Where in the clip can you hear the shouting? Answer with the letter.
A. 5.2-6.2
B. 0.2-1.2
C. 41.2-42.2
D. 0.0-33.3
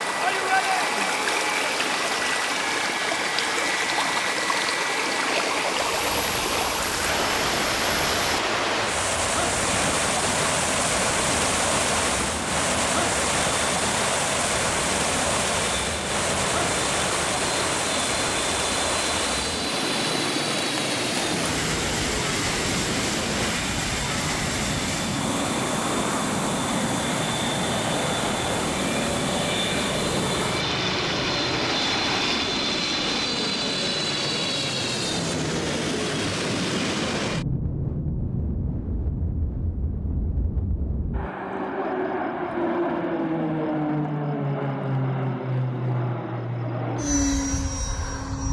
B.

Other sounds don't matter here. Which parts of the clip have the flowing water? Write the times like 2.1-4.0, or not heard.
0.0-33.3.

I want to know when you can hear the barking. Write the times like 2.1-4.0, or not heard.
not heard.